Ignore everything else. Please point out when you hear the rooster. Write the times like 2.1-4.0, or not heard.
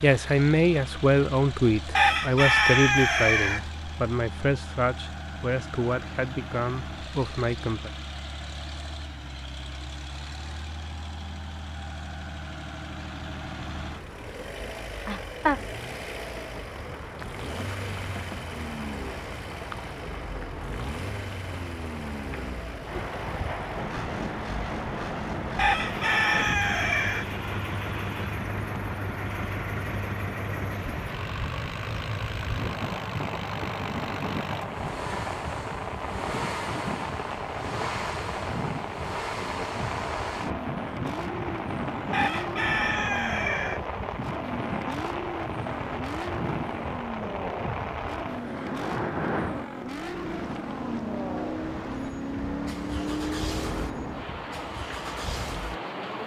1.9-3.6, 25.6-27.3, 42.1-43.9.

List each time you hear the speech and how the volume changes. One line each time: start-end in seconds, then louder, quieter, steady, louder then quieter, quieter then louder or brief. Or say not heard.
0.0-7.9 quieter.